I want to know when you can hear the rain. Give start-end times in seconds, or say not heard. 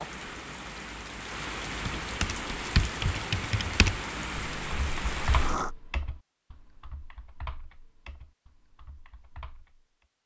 0.0-5.7.